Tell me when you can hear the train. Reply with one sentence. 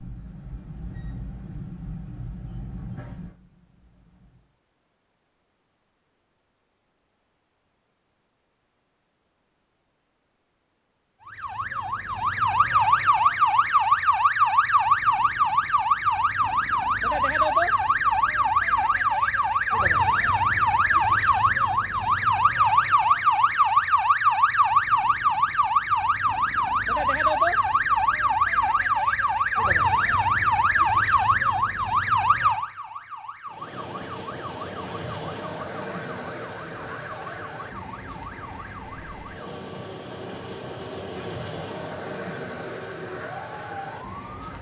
The train can be heard from 0.0 to 4.5 s and from 33.5 to 44.5 s.